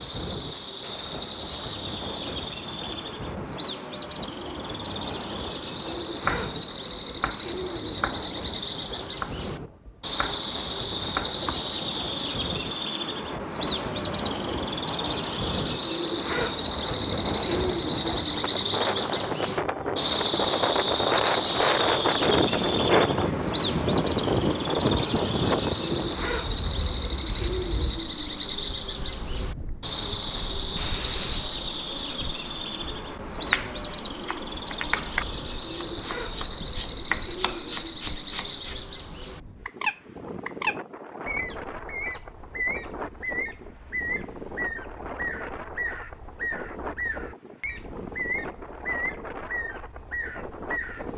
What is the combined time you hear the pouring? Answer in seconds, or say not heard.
3 s.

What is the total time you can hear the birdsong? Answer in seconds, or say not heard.
51 s.